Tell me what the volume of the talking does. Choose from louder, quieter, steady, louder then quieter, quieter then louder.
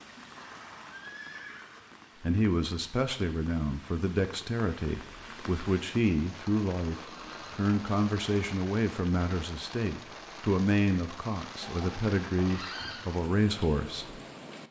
steady.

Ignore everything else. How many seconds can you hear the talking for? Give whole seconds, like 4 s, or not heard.
12 s.